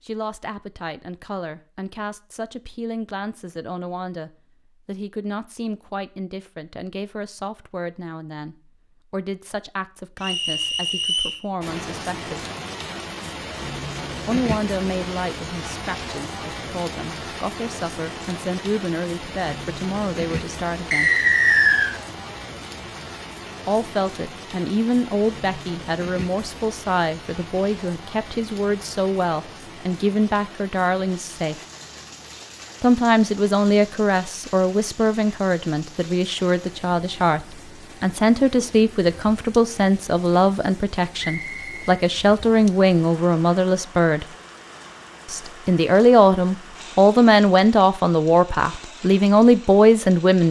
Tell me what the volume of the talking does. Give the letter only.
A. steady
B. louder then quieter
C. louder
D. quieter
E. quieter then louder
C.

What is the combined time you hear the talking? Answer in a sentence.
You can hear the talking for 44 seconds altogether.